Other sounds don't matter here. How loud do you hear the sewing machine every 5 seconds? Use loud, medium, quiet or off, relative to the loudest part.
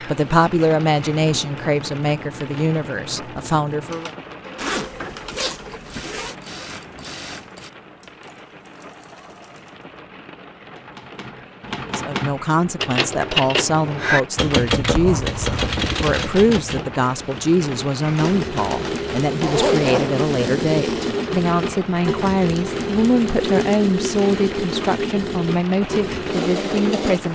quiet, quiet, off, loud, loud, loud.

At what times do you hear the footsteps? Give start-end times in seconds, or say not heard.
not heard.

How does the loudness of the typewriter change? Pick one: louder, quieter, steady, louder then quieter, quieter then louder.
louder then quieter.